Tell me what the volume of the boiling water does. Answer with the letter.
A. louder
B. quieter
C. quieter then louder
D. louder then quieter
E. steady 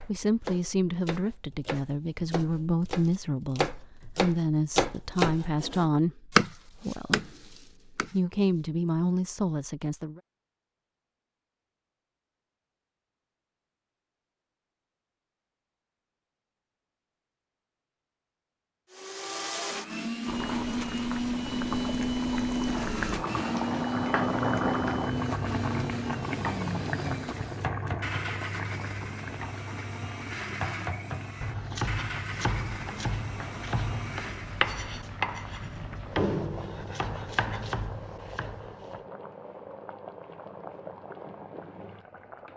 B.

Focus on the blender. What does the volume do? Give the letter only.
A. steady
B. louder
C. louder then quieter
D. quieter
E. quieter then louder
D.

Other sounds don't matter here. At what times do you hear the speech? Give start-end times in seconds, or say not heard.
0.1-10.2.